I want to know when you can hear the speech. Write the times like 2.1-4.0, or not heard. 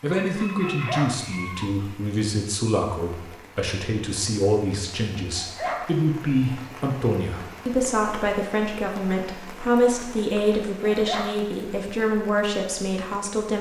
0.0-13.5.